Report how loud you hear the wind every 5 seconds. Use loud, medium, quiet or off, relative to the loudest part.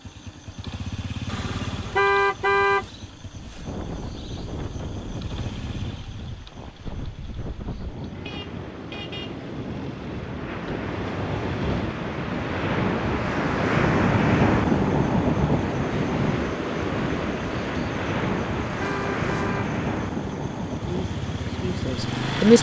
quiet, quiet, loud, loud, medium.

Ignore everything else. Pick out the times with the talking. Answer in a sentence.
You can hear the talking from 20.9 to 22.5 s.